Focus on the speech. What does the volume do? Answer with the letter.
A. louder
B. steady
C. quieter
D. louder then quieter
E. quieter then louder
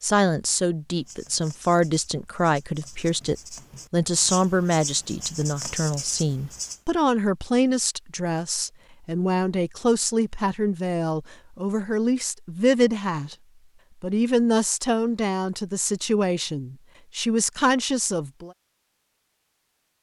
B.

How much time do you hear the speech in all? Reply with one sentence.
The speech can be heard for 18 seconds in total.